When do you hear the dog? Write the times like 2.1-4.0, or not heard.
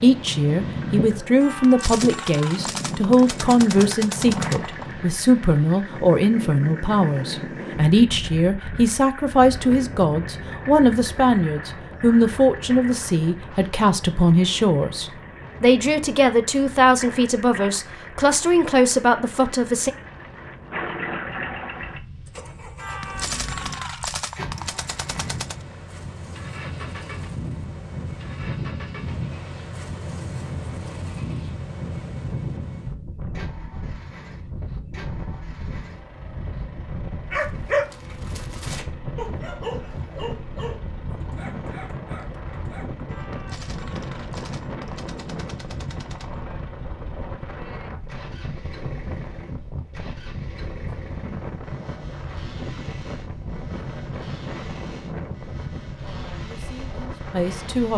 37.3-43.0.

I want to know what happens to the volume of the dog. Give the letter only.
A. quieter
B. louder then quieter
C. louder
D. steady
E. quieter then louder
A.